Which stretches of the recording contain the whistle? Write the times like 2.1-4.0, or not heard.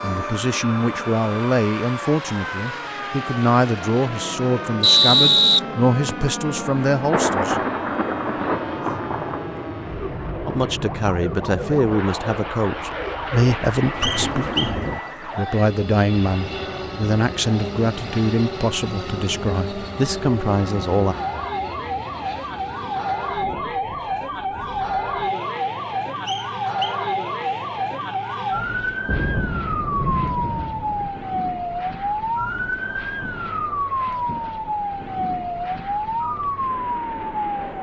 4.8-6.2, 14.0-14.7, 26.2-27.6.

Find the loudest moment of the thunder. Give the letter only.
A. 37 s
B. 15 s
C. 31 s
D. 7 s
D.